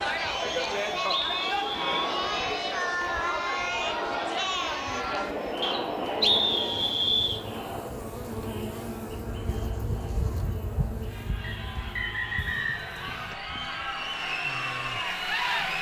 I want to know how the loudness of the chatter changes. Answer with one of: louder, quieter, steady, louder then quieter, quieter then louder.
quieter then louder.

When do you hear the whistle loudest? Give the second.
6 s.